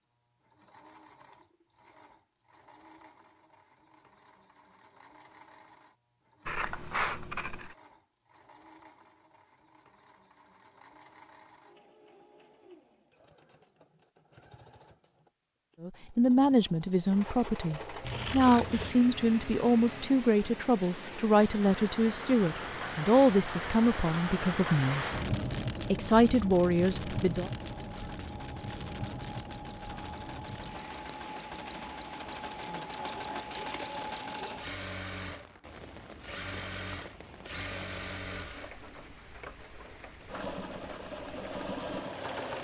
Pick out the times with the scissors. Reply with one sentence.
You can hear the scissors from 6.5 to 7.8 s, from 18.0 to 18.9 s and from 33.0 to 34.8 s.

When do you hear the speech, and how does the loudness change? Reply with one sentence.
You can hear the speech from 15.8 to 25.1 s, at a steady volume; and briefly from 25.9 to 27.5 s.